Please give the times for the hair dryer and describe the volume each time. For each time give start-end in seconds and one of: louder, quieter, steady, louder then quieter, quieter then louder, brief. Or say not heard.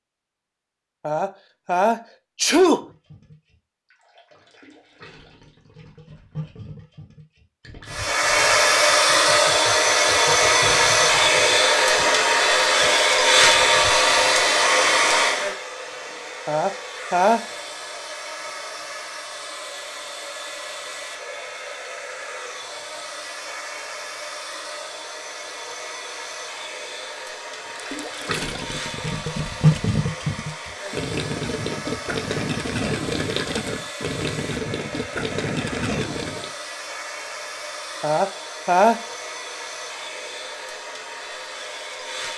7.8-42.3 quieter.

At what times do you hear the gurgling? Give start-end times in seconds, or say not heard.
2.8-14.4, 27.8-36.5.